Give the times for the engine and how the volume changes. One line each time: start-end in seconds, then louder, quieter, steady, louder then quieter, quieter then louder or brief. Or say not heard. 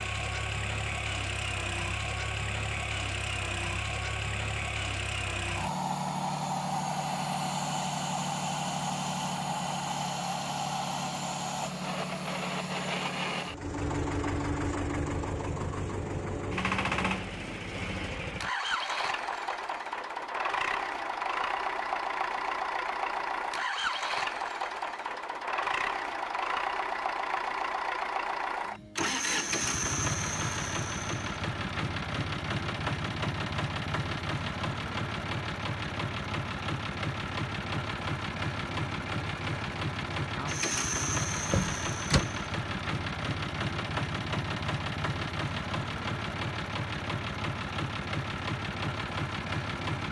0.0-50.0 steady.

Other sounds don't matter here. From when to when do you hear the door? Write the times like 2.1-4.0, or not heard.
41.5-42.2.